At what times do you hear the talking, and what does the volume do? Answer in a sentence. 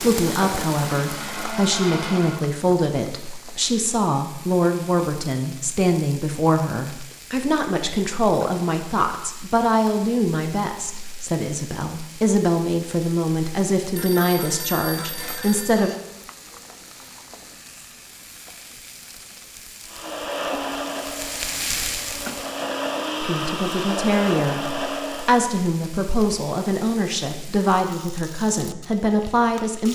You can hear the talking from 0.0 to 15.9 s, at a steady volume; and from 23.2 to 29.9 s, at a steady volume.